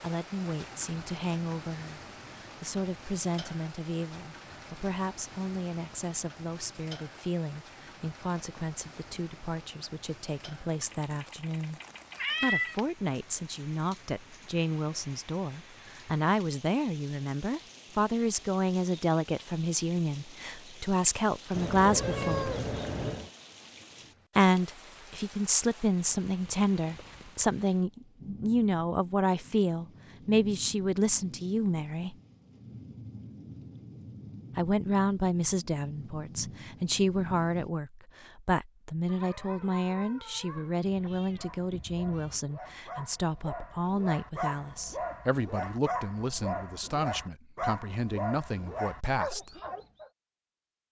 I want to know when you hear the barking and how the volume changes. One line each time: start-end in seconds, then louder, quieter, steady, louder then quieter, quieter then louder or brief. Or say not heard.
39.0-50.1 louder.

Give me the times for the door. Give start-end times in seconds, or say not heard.
not heard.